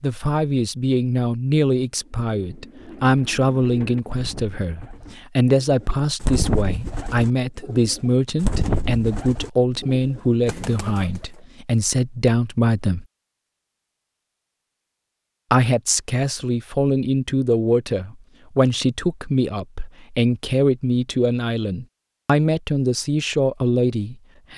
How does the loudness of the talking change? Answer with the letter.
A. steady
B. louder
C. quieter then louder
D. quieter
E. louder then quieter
A.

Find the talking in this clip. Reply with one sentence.
You can hear the talking from 0.0 to 13.1 s and from 15.5 to 24.5 s.